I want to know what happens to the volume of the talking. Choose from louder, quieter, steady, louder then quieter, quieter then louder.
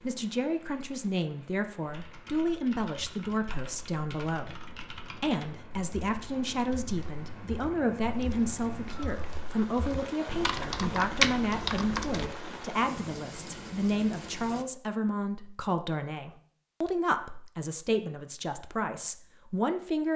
steady.